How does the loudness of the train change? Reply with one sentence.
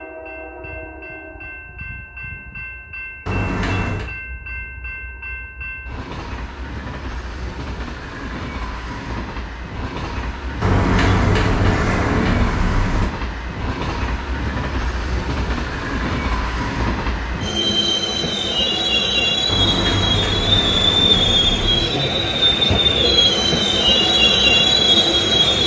The loudness of the train goes up.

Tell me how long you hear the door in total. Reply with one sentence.
The door can be heard for 6 seconds in total.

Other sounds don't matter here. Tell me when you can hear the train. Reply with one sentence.
The train can be heard from 0.0 to 25.6 s.